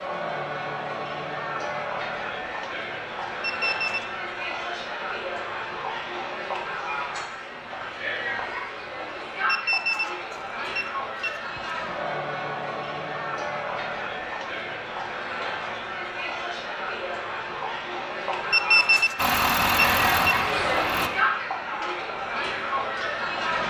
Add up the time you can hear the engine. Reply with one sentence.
The engine can be heard for 2 seconds in total.